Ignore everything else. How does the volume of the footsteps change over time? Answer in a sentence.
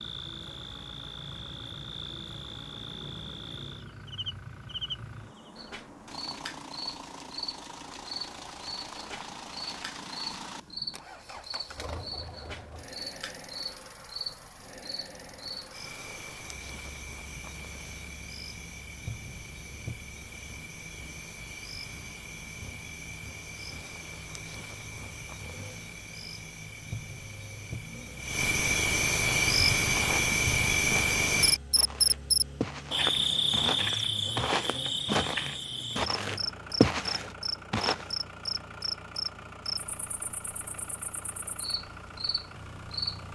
The volume of the footsteps goes up.